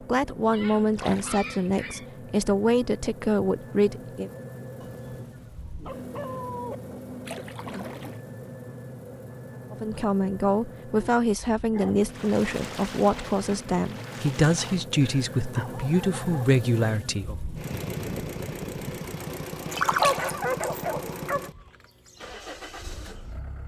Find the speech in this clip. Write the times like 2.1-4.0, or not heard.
0.1-4.3, 9.7-17.4.